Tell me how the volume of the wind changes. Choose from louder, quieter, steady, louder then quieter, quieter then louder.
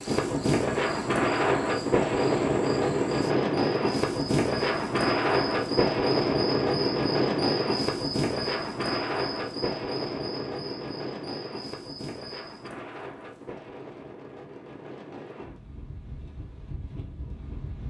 quieter.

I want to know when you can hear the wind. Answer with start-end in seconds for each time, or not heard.
0.0-17.8.